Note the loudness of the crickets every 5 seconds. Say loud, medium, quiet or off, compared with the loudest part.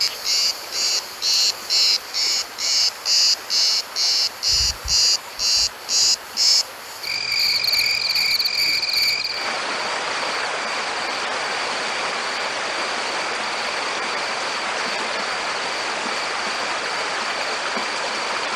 loud, loud, quiet, quiet.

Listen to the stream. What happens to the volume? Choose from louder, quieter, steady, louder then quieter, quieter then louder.
louder.